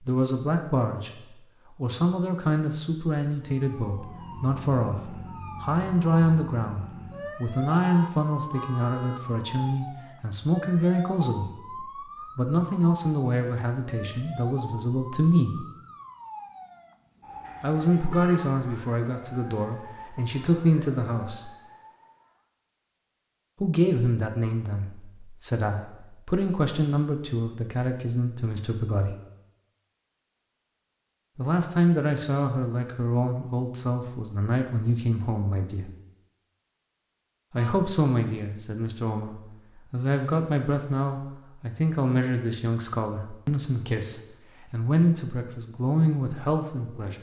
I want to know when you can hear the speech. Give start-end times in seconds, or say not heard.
0.0-15.7, 17.6-21.5, 23.6-29.1, 31.4-35.9, 37.5-47.1.